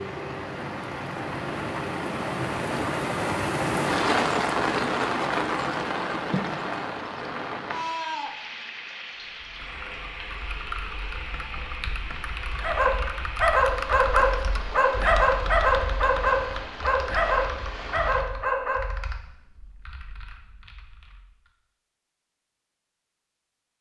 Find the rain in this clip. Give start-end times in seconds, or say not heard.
0.0-18.2.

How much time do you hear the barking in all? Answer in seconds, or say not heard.
6 s.